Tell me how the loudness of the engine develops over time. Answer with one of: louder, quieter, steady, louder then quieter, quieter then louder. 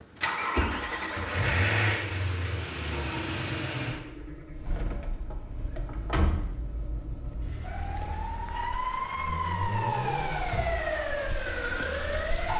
quieter then louder.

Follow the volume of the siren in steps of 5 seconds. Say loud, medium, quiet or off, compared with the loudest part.
off, loud, loud.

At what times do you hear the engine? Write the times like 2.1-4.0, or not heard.
0.0-12.5.